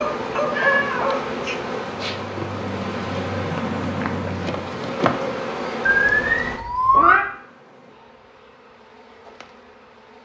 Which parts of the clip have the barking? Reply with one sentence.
The barking can be heard from 0.0 to 1.6 s.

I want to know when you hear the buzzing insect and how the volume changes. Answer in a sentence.
The buzzing insect can be heard from 0.0 to 10.2 s, getting quieter.